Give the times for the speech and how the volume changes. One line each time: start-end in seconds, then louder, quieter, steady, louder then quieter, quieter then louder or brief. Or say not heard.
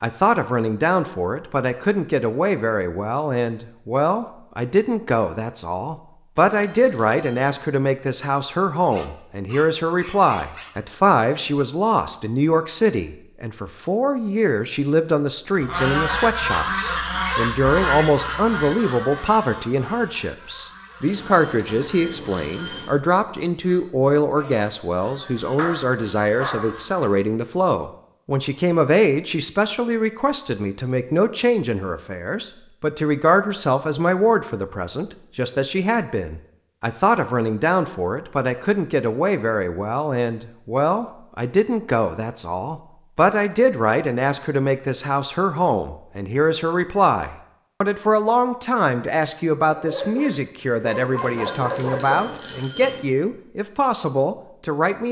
0.0-55.0 steady.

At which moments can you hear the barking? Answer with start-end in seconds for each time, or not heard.
8.9-10.8, 25.6-26.9, 49.7-52.3.